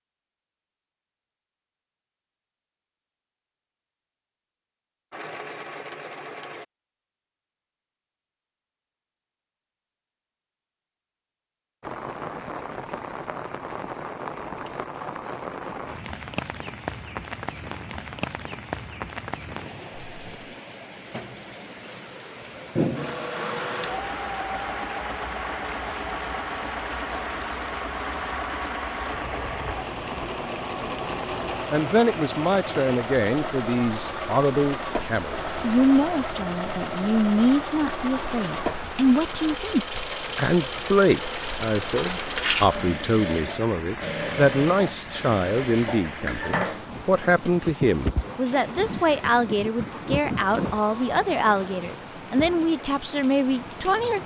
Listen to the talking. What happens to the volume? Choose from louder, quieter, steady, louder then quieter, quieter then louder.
steady.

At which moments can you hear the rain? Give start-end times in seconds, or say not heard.
11.8-54.2.